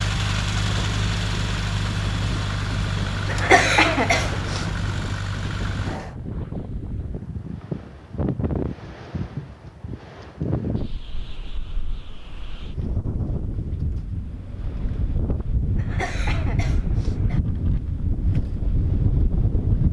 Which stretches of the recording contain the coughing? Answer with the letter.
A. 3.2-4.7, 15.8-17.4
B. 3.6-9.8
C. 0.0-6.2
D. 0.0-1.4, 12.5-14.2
A.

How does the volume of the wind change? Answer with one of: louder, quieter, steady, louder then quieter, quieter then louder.
louder.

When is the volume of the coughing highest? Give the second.
4 s.